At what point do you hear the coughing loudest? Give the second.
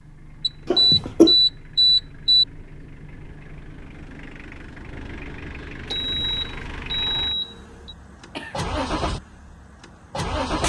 1 s.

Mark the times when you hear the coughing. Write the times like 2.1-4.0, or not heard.
0.7-1.4, 8.1-8.7.